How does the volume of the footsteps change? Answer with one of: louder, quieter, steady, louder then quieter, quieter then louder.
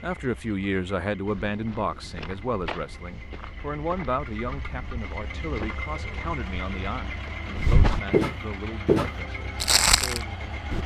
louder.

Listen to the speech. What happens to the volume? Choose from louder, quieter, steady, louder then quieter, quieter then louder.
quieter.